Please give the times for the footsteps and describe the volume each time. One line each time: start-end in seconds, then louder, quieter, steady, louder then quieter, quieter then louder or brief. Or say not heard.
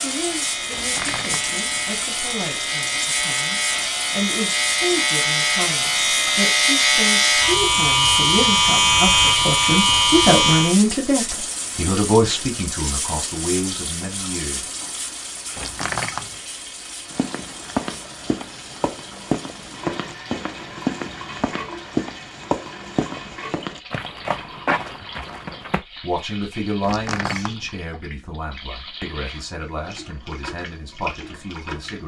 17.1-25.8 steady.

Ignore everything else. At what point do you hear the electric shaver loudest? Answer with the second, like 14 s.
9 s.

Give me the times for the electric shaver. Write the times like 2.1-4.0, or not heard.
0.0-10.8.